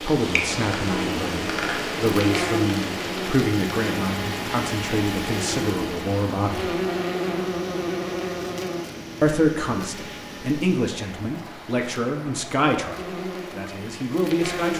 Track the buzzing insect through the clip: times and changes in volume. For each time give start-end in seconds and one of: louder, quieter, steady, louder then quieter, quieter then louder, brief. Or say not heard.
0.0-14.7 quieter.